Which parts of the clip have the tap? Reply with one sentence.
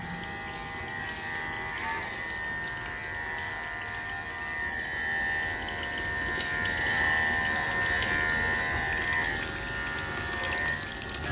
You can hear the tap from 0.0 to 11.2 s.